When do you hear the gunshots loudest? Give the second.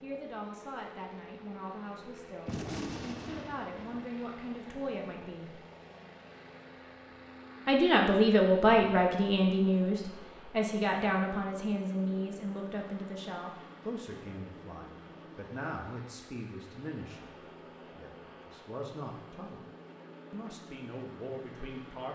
3 s.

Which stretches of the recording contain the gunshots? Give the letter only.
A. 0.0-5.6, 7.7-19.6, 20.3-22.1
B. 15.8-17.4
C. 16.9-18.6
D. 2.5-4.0
D.